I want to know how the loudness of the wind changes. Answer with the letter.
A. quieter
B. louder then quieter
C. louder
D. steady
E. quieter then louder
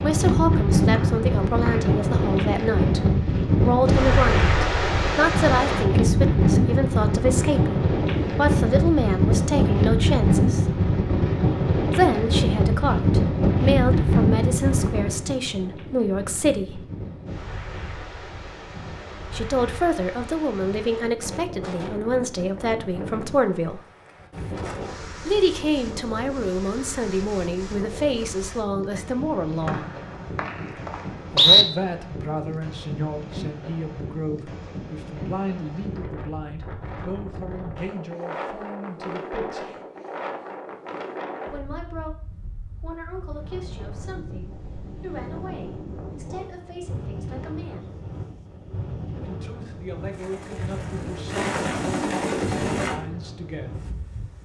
A.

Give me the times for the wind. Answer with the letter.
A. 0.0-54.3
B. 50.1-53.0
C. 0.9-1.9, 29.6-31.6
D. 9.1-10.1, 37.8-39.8
A.